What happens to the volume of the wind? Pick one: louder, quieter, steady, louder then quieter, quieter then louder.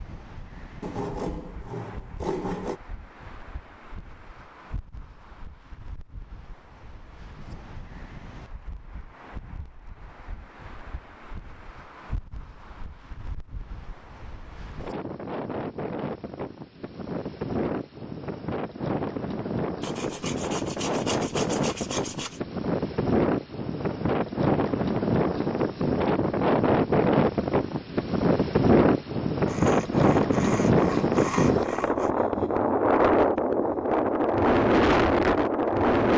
louder.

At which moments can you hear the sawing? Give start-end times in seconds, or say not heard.
0.8-2.8, 19.8-22.4, 29.4-32.1.